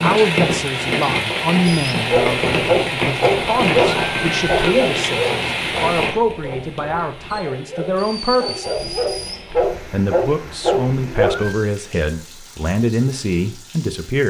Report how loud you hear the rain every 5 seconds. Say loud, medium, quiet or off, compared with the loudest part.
loud, medium, quiet.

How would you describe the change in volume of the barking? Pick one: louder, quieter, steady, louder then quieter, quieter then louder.
quieter then louder.